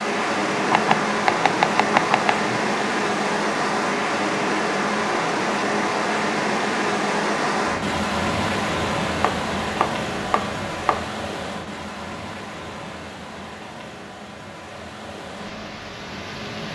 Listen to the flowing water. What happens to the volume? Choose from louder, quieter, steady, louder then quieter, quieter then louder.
quieter.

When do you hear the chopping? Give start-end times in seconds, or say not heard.
0.7-2.6, 9.2-11.1.